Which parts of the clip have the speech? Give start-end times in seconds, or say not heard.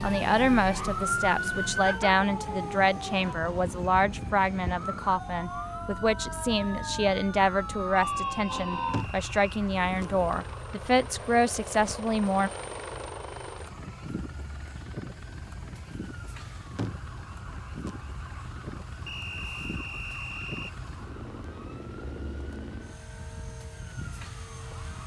0.0-12.5.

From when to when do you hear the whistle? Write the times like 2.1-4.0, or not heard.
8.0-9.4, 19.1-20.8.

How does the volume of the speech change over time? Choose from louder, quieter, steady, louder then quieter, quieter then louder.
steady.